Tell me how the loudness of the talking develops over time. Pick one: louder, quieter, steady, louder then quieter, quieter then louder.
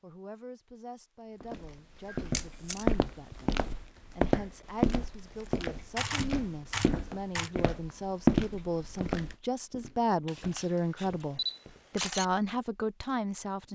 louder.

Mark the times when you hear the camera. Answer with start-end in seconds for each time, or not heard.
2.3-2.9, 6.0-7.5, 10.2-12.2.